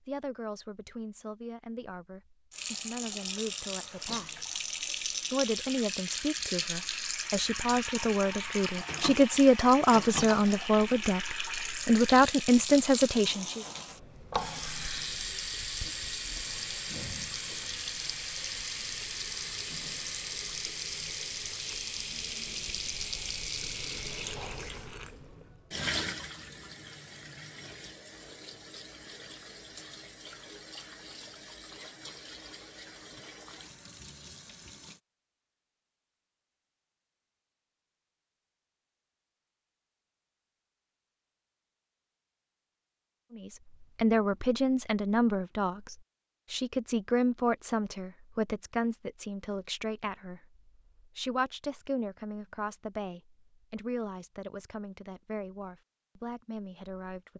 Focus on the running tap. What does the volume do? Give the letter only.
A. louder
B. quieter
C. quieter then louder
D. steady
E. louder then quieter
B.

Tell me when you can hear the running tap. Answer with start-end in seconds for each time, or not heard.
2.5-35.0.